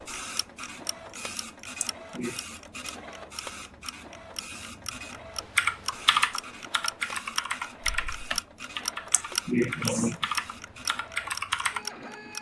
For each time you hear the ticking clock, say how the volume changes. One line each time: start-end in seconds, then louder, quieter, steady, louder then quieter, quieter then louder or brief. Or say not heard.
0.1-12.3 louder.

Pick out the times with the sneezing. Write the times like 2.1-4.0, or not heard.
1.8-2.4, 9.1-10.2.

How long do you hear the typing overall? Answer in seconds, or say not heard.
6 s.